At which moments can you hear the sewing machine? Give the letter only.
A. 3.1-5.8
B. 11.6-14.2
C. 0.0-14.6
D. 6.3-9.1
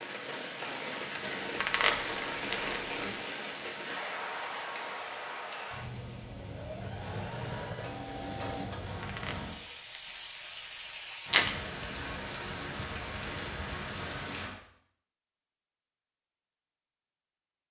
D.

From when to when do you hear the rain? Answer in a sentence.
The rain can be heard from 0.0 to 14.6 s.